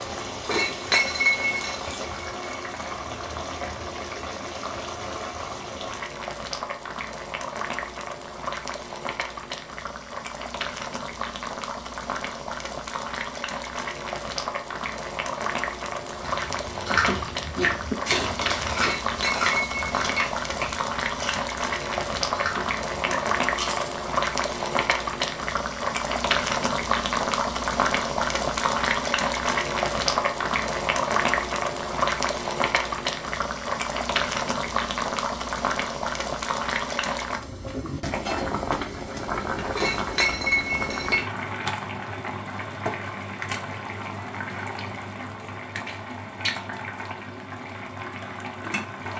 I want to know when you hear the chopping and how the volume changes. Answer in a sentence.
The chopping can't be heard in this clip.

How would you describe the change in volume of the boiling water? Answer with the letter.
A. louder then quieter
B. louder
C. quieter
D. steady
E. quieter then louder
A.